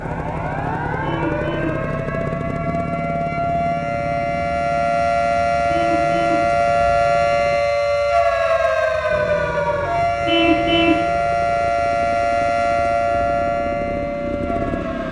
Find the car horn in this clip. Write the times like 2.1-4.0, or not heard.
1.0-1.9, 5.7-6.5, 10.2-11.1.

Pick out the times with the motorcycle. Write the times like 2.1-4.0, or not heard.
0.0-7.6, 9.1-15.0.